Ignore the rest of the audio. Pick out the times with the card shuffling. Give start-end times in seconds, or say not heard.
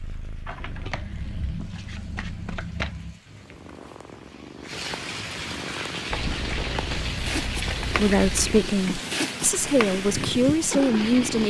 0.5-3.2, 6.1-8.6.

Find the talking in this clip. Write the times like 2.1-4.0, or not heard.
7.9-11.4.